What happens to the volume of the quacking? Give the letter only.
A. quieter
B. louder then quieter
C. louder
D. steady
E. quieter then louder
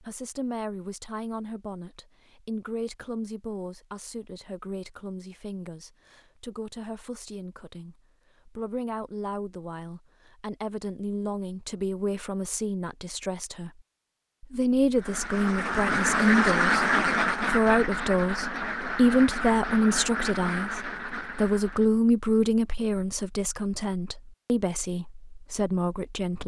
A.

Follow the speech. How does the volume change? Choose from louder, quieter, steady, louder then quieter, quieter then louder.
louder.